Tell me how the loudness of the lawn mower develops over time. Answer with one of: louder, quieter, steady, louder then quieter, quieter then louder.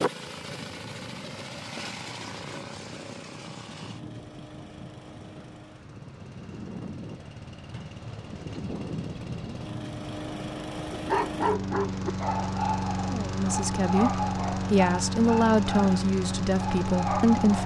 quieter then louder.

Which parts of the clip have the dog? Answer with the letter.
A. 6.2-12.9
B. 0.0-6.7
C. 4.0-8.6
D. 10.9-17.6
D.